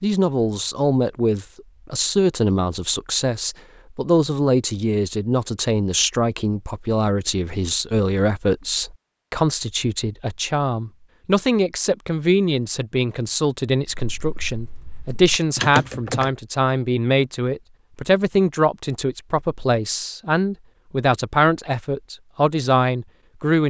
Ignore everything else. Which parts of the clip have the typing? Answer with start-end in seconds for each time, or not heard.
13.8-16.3.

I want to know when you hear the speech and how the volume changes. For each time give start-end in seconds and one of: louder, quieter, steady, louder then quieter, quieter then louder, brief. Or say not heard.
0.0-23.6 steady.